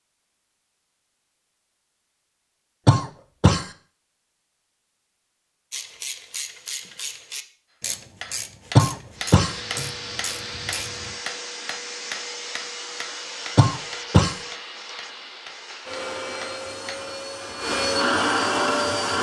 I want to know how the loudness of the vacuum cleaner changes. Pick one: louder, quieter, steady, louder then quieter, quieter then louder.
louder.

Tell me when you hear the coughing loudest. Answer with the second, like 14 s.
9 s.